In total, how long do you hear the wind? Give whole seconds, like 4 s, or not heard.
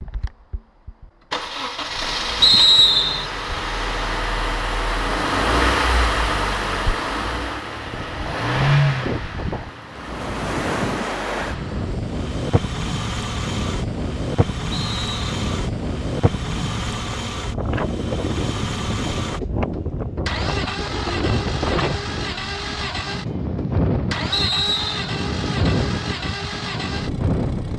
20 s.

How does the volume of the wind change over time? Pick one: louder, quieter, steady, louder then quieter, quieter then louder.
steady.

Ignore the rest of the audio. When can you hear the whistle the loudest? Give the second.
3 s.